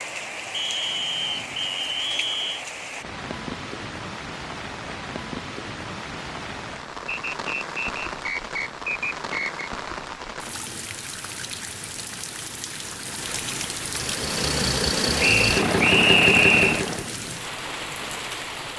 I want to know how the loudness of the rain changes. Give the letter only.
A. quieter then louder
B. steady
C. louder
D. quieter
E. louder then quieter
B.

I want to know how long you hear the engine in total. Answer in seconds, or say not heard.
3 s.